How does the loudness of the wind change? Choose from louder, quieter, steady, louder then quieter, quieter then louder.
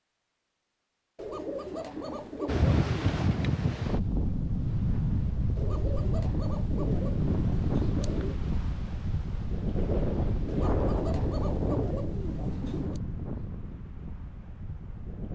quieter.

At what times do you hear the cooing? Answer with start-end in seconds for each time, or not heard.
1.1-3.2, 5.5-8.4, 10.4-13.0.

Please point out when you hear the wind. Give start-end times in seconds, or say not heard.
2.5-15.3.